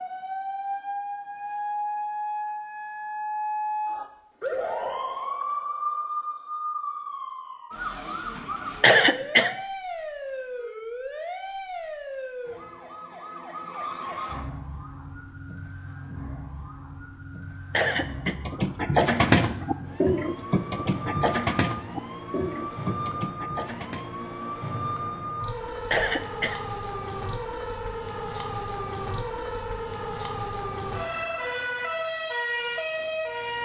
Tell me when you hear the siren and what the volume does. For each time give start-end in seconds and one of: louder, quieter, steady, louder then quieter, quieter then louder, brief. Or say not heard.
0.0-33.6 quieter then louder.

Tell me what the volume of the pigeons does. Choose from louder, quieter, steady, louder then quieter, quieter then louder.
quieter.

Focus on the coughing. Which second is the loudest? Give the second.
9 s.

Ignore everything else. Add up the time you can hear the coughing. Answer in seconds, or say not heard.
2 s.